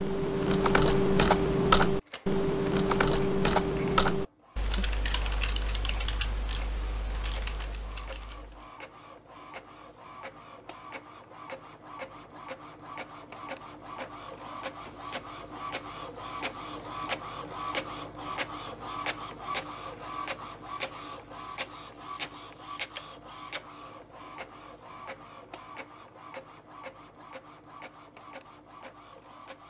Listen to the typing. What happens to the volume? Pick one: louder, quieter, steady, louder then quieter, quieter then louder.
quieter.